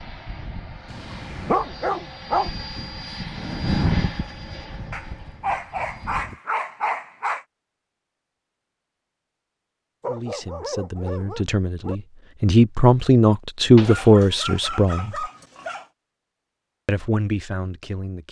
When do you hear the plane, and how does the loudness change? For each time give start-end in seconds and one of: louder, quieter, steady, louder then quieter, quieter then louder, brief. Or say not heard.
0.0-6.4 louder then quieter.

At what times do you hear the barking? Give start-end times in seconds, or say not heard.
0.9-2.5, 4.9-7.5, 10.0-11.9, 13.8-15.9.